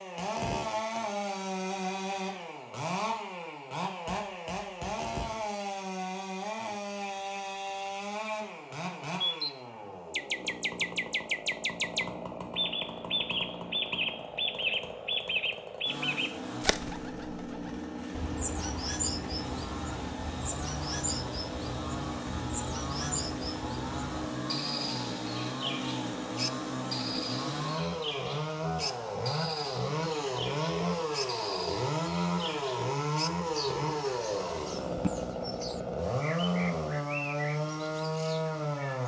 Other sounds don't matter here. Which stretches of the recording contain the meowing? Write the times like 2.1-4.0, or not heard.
not heard.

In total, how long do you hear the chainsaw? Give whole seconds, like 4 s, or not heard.
39 s.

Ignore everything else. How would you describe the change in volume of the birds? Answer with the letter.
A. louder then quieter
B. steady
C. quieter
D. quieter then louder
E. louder
C.